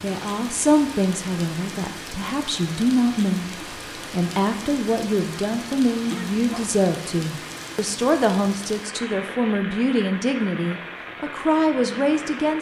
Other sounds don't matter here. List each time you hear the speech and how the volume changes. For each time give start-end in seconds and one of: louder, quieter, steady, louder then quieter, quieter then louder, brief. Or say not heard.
0.0-12.5 steady.